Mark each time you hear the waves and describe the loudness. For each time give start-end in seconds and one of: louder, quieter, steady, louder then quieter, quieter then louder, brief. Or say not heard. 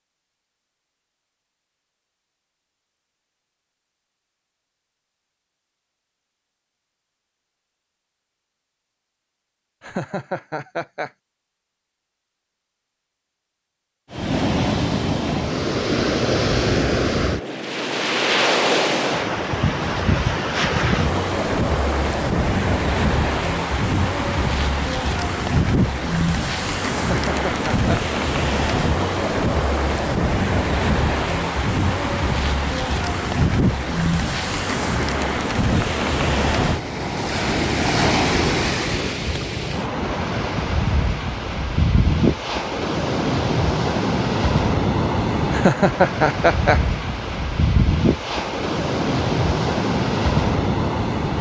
14.1-51.3 steady.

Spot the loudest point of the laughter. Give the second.
46 s.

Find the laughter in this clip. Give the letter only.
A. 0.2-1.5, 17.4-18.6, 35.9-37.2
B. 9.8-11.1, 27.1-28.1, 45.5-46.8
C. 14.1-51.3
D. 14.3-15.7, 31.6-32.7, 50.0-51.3
B.